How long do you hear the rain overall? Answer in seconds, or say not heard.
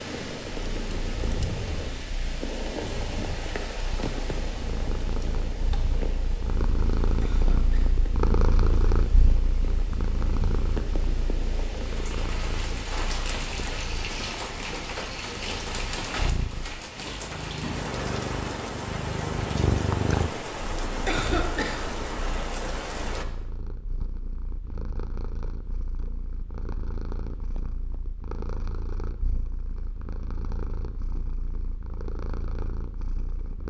23 s.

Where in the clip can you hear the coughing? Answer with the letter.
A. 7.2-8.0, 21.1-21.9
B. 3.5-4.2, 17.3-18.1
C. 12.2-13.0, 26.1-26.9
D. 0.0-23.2
A.